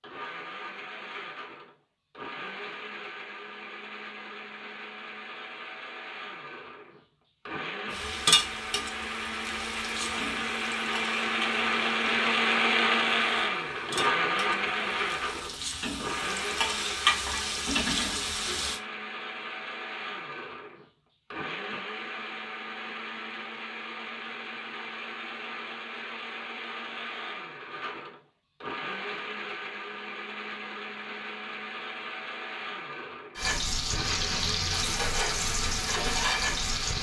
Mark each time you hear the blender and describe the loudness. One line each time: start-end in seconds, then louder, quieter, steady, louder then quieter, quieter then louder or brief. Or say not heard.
0.0-36.9 louder then quieter.